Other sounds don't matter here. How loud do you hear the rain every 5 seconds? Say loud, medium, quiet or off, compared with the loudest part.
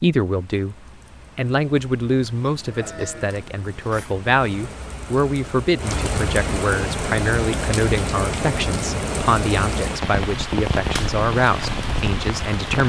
quiet, loud, loud.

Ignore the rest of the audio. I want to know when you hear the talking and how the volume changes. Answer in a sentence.
The talking can be heard briefly from 0.0 to 0.8 s; and from 1.4 to 12.8 s, at a steady volume.